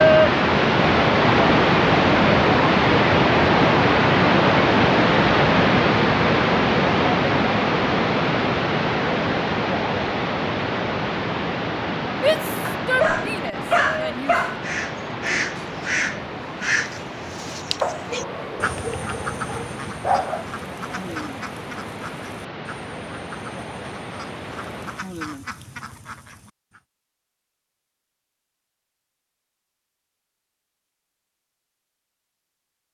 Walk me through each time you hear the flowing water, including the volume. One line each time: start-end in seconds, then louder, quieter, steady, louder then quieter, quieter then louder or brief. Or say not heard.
0.0-25.1 quieter.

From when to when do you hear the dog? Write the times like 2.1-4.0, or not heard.
12.7-14.6, 17.8-20.4.